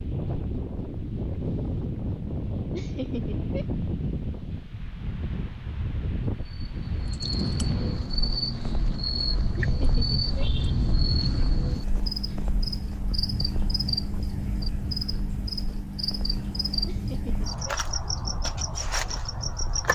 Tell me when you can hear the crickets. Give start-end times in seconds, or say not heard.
6.5-19.9.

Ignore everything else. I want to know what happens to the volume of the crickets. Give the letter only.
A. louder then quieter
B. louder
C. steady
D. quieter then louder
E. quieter
C.